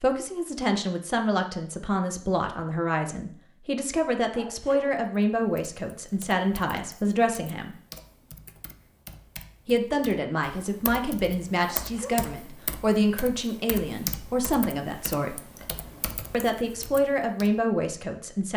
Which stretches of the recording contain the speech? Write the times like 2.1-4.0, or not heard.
0.0-7.8, 9.7-15.4, 16.3-18.5.